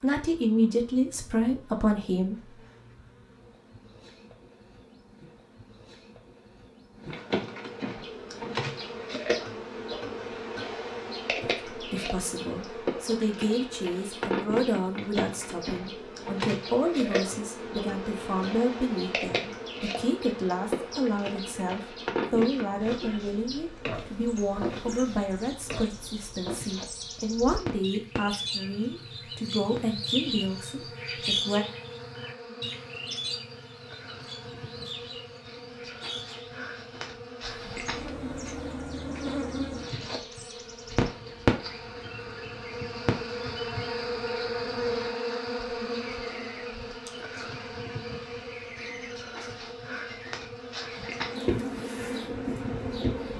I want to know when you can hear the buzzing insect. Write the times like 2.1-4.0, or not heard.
0.0-53.3.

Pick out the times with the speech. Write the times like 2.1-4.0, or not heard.
0.0-2.4, 11.4-31.6.